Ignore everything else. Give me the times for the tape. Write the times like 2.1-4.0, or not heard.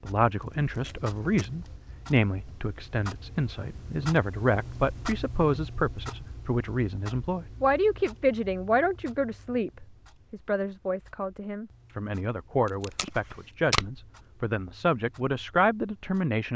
0.4-1.6, 12.7-13.9.